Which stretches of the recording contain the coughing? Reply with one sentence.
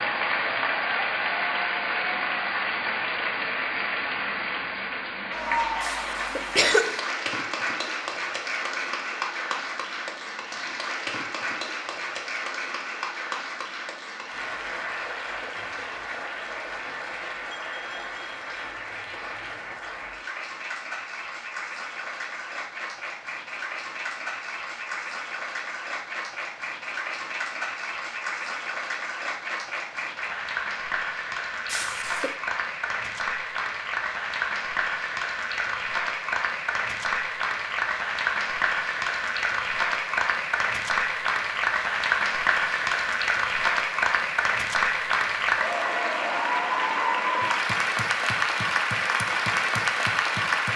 You can hear the coughing from 5.8 to 7.0 s and from 31.6 to 32.4 s.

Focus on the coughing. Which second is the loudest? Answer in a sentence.
The loudest moment of the coughing is at 7 seconds.